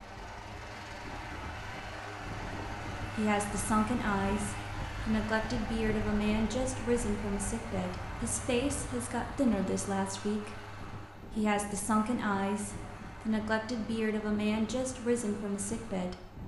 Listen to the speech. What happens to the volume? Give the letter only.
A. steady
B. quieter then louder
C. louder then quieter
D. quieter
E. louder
A.